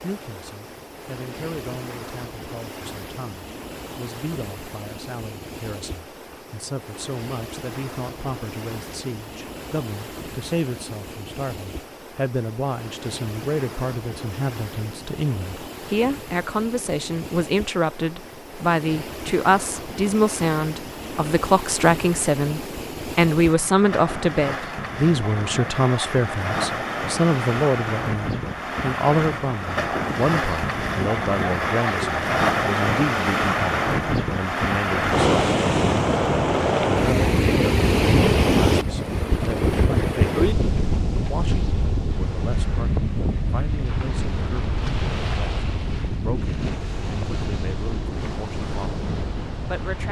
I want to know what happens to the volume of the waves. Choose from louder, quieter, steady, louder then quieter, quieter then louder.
louder then quieter.